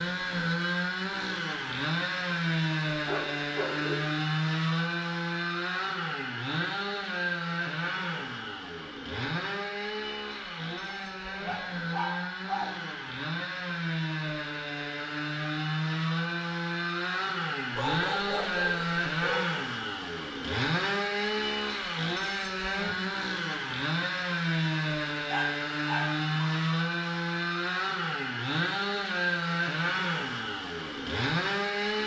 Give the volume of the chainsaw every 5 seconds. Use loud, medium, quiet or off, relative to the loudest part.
loud, loud, medium, loud, loud, loud, loud.